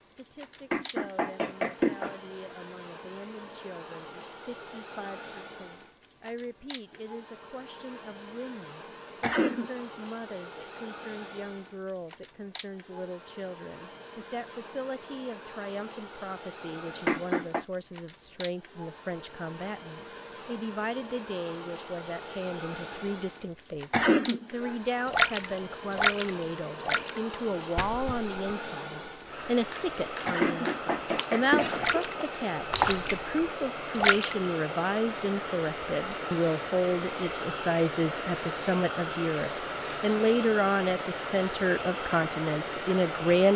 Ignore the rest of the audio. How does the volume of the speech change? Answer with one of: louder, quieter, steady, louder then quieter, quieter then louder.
louder.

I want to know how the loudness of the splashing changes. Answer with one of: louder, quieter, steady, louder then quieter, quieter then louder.
quieter then louder.